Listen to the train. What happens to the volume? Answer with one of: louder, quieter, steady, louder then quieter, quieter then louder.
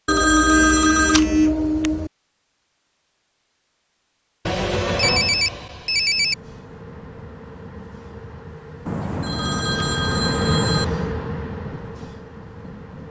louder then quieter.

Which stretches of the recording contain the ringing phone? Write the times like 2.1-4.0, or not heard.
0.1-2.1, 4.5-6.3, 8.8-10.8.